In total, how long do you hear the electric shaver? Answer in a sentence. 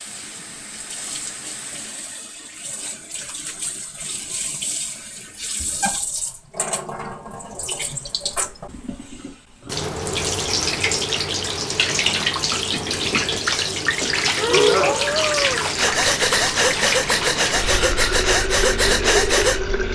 You can't hear the electric shaver here.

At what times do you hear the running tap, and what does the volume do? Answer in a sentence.
The running tap can be heard from 0.0 to 19.9 s, getting louder.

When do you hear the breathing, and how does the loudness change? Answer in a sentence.
You can hear the breathing from 14.3 to 19.6 s, at a steady volume.